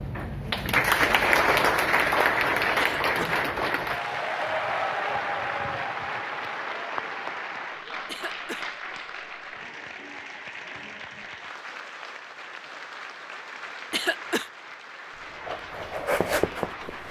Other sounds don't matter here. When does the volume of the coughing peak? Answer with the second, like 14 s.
14 s.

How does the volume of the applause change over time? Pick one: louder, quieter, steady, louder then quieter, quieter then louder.
quieter.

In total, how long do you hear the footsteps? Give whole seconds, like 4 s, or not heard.
2 s.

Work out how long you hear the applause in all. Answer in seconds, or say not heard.
17 s.